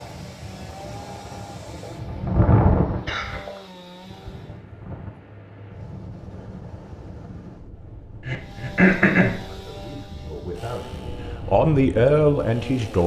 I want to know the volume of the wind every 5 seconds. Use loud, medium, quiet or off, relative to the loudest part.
loud, quiet, medium.